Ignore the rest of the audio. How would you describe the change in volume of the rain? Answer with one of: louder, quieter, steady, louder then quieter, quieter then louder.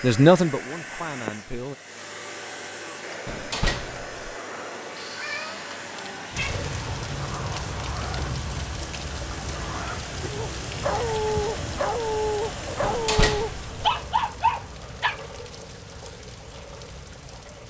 quieter.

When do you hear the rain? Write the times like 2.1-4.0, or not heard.
6.3-17.6.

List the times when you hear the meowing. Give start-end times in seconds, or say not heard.
5.0-6.7, 10.2-11.8.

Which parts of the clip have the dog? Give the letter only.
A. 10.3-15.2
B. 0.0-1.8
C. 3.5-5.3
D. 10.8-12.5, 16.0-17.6
A.